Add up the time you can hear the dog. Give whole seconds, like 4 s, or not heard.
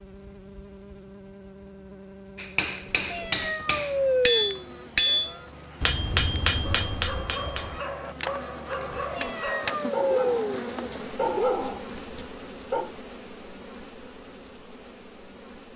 6 s.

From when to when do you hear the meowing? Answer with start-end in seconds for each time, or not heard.
2.8-5.5, 8.9-10.6.